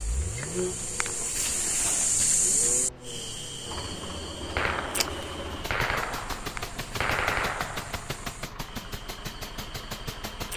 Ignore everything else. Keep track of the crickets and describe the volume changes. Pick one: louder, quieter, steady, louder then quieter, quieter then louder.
quieter.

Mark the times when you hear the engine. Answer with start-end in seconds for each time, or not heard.
0.0-10.5.